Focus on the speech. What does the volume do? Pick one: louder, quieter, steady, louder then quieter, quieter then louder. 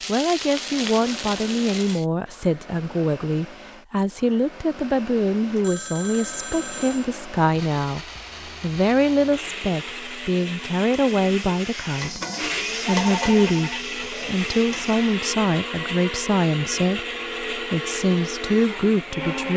steady.